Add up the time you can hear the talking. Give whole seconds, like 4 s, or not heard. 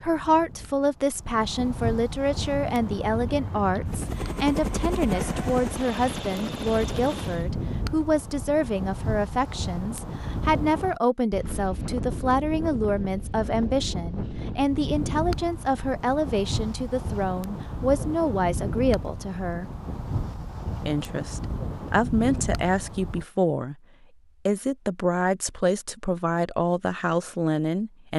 26 s.